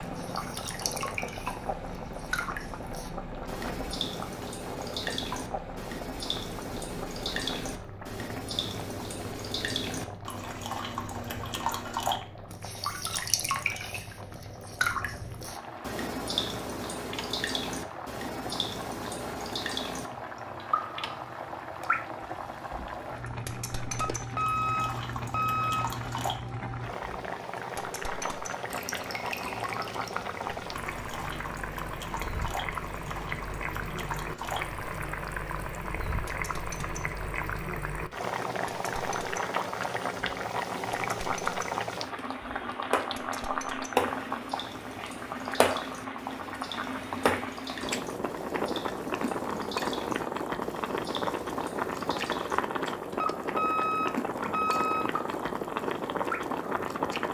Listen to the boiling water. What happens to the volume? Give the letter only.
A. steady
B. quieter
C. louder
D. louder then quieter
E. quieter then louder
C.